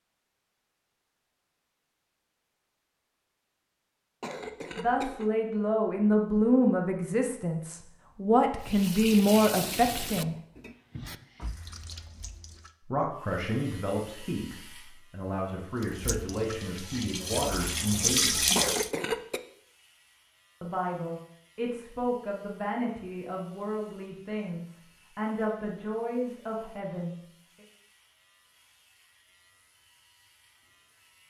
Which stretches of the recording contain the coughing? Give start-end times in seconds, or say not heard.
4.2-5.3, 18.6-19.4.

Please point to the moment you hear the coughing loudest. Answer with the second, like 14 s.
19 s.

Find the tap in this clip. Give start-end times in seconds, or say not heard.
8.6-12.7, 15.8-18.9.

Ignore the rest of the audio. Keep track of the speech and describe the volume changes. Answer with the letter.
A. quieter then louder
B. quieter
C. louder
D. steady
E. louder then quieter
B.